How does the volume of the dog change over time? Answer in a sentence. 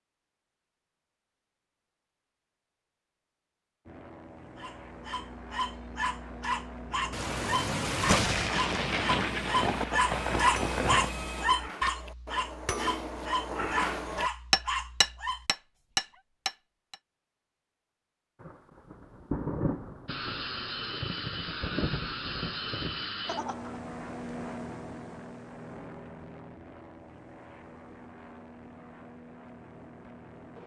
The volume of the dog goes up, then down.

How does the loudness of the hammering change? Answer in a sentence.
The loudness of the hammering goes up.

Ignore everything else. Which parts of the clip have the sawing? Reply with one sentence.
You can't hear the sawing here.